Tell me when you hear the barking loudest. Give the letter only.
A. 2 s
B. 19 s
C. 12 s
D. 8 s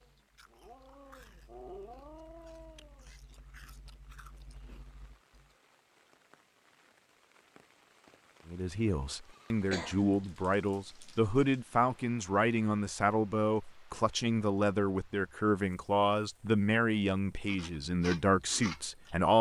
A.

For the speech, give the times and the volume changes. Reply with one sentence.
You can hear the speech from 8.4 to 19.3 s, at a steady volume.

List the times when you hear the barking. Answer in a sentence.
The barking can be heard from 0.0 to 3.1 s.